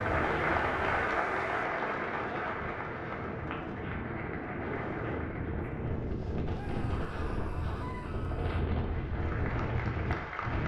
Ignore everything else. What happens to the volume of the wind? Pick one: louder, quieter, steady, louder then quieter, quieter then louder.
louder.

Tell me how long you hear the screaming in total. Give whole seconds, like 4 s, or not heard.
2 s.